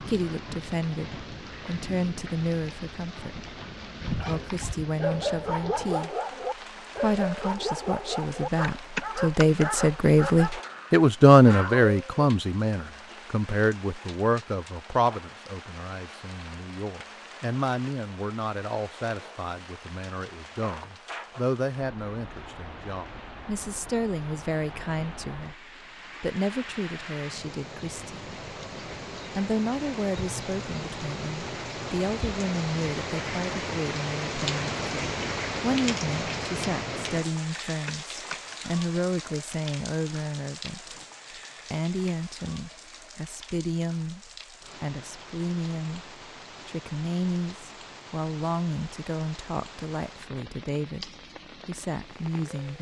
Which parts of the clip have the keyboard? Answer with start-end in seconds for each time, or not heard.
8.6-9.7, 37.5-38.5.